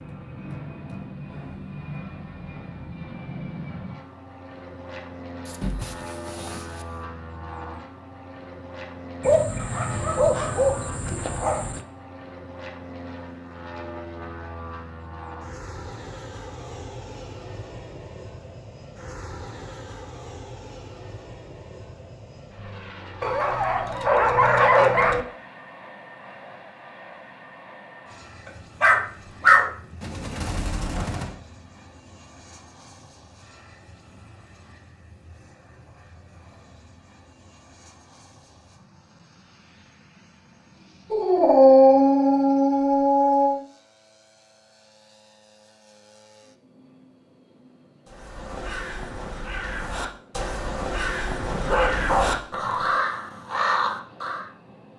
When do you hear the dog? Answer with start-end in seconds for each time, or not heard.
5.5-7.0, 9.2-11.8, 23.2-25.2, 28.8-31.3, 41.1-43.6, 51.5-53.0.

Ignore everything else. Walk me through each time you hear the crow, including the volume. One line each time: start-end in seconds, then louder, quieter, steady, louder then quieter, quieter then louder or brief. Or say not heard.
48.0-54.5 louder.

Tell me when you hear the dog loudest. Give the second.
42 s.